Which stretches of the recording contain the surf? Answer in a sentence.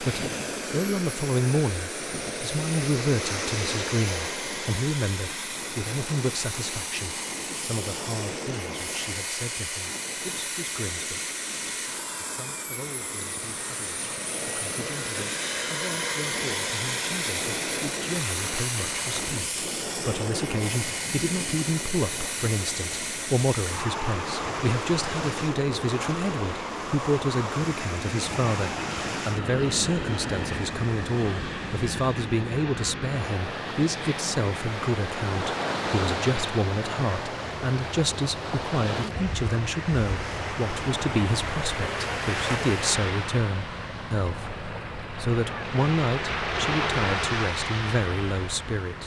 The surf can be heard from 0.0 to 49.0 s.